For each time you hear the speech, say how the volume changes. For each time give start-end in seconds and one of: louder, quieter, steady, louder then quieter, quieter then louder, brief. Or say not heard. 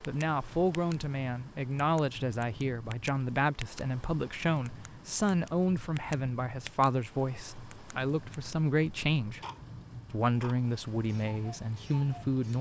0.0-9.4 steady
10.1-12.5 brief.